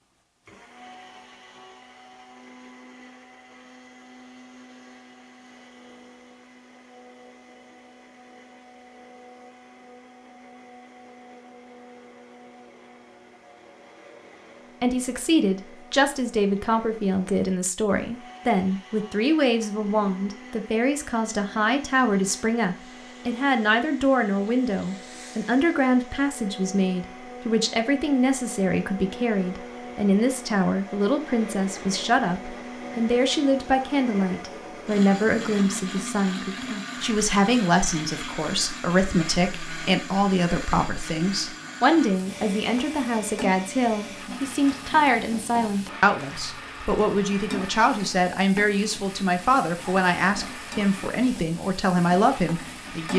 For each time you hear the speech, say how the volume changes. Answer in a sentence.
The speech can be heard from 14.8 to 53.1 s, at a steady volume.